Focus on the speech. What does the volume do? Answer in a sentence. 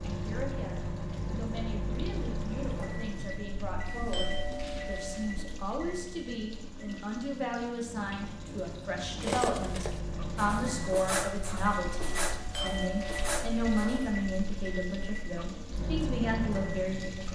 The loudness of the speech goes up.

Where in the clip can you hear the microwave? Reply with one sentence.
The microwave can be heard from 0.0 to 17.2 s.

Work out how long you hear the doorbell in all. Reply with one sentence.
You can hear the doorbell for 3 seconds altogether.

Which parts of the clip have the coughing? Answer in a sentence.
The coughing can't be heard in this clip.